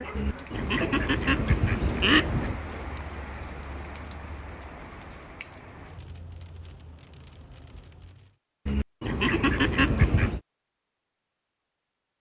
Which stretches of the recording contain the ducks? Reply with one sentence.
The ducks can be heard from 0.1 to 2.6 s and from 8.7 to 10.4 s.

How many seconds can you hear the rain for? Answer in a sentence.
You can hear the rain for 8 seconds altogether.